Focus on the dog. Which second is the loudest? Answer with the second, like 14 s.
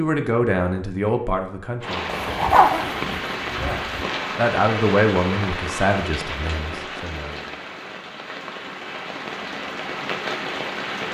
3 s.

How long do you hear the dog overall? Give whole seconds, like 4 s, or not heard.
2 s.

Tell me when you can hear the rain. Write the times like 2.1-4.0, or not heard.
1.8-11.0.